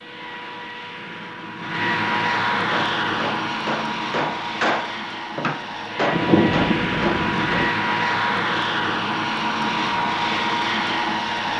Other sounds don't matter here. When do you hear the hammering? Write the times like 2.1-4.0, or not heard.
2.7-7.8.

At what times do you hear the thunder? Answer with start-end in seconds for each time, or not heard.
6.1-7.7.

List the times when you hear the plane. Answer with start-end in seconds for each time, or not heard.
0.0-11.5.